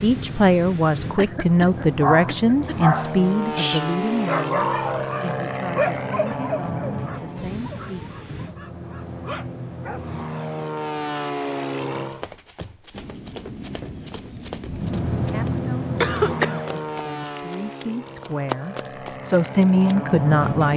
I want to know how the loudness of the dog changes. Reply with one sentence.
The loudness of the dog goes down.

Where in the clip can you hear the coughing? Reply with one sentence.
You can hear the coughing from 1.1 to 2.8 s and from 16.0 to 16.8 s.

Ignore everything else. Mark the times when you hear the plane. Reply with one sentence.
The plane can be heard from 0.0 to 12.2 s and from 14.7 to 20.7 s.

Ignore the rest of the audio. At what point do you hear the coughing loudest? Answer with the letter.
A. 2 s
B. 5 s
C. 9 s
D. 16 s
D.